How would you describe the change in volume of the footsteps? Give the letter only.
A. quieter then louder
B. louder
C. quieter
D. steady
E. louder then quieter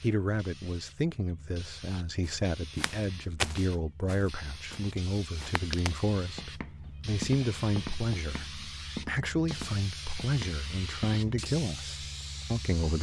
A.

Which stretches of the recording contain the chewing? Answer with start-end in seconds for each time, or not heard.
not heard.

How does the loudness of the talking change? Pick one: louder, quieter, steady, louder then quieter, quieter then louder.
steady.